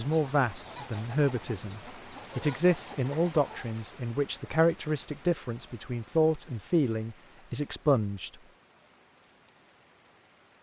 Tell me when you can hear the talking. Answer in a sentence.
The talking can be heard from 0.0 to 8.3 s.